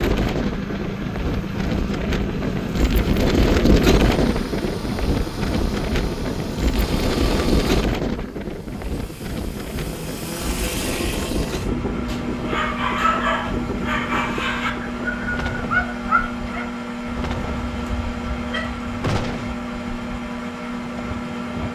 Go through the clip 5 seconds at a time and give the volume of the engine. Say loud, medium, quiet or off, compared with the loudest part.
loud, medium, loud, loud, loud.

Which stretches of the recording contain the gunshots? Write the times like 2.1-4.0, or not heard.
19.0-19.6.